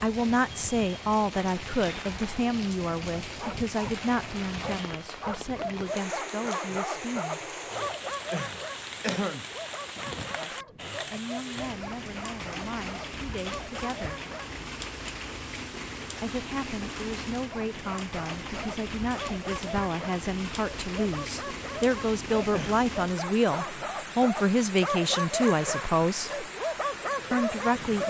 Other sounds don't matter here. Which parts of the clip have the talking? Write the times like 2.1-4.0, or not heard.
0.0-7.5, 10.3-14.2, 16.2-26.4, 27.3-28.0.